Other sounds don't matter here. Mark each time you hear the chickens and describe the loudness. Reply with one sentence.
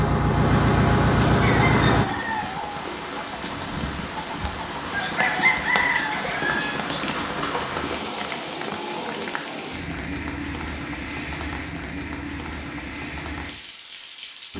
The chickens can be heard from 1.4 to 6.8 s, getting quieter then louder.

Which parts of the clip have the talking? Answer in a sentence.
The talking can't be heard in this clip.